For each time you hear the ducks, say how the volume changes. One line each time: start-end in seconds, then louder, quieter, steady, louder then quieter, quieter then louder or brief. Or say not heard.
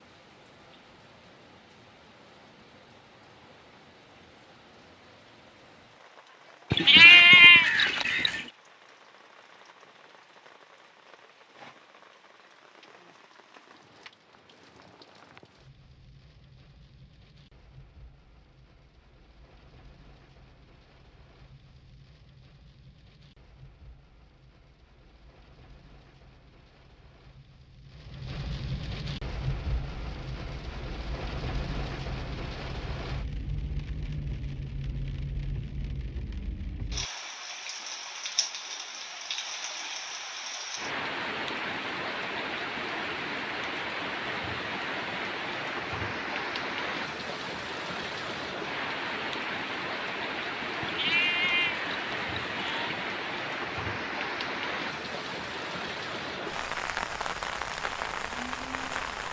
not heard.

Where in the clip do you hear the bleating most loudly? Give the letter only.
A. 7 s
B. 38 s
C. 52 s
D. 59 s
A.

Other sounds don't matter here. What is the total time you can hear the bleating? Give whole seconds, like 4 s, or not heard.
4 s.